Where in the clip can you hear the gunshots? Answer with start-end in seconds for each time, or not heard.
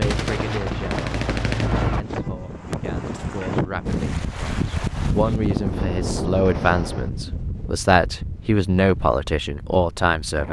0.0-2.0.